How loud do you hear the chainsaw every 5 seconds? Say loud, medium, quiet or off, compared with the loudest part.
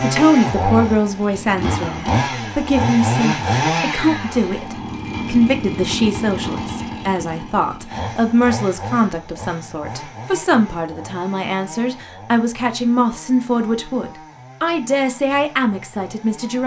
loud, medium, quiet, quiet.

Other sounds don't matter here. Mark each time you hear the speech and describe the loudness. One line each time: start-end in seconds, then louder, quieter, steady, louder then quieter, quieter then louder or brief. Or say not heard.
0.0-16.6 steady.